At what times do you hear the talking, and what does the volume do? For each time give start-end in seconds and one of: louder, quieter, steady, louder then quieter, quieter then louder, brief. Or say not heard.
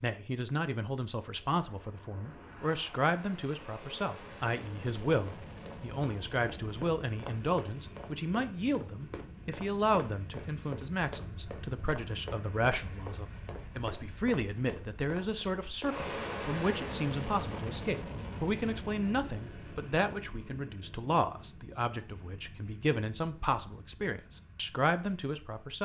0.0-25.8 steady.